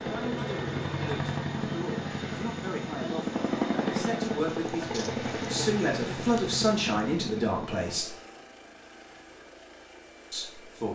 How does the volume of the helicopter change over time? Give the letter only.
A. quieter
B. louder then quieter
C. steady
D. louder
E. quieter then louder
A.